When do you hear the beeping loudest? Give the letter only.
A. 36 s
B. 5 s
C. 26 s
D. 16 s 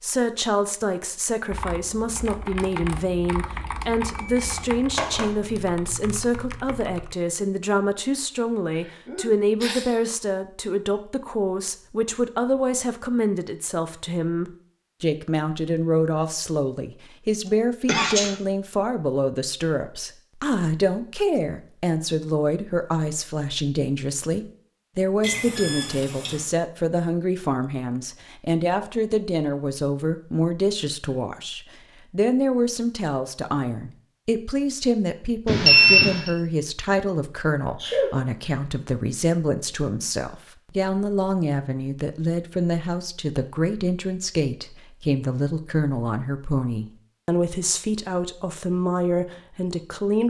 A.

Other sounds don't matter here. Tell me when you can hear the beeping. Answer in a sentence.
The beeping can be heard from 4.0 to 5.2 s, from 25.2 to 26.4 s and from 35.5 to 36.3 s.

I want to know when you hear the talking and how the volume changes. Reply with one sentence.
You can hear the talking from 0.0 to 50.2 s, at a steady volume.